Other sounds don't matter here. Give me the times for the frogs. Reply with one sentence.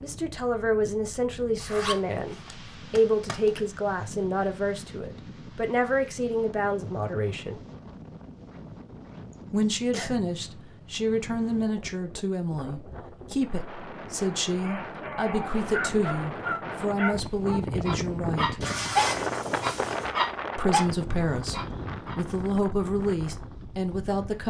The frogs can't be heard in this clip.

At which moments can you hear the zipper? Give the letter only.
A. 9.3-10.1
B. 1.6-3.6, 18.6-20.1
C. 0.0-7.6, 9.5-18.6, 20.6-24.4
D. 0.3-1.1
B.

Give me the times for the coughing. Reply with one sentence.
You can hear the coughing from 9.3 to 10.1 s.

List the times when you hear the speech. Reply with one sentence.
You can hear the speech from 0.0 to 7.6 s, from 9.5 to 18.6 s and from 20.6 to 24.4 s.